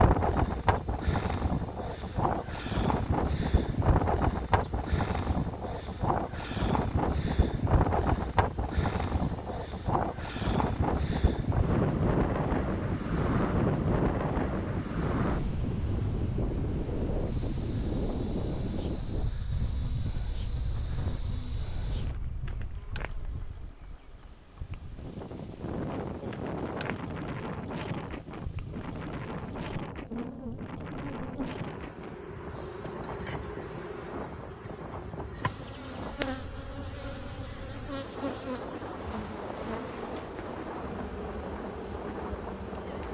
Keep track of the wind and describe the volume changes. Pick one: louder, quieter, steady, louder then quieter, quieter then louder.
quieter.